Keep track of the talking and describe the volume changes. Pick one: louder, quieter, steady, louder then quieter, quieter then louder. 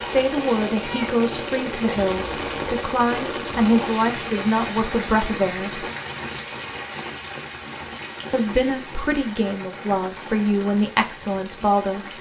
steady.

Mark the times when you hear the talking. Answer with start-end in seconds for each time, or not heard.
0.1-5.8, 8.3-12.1.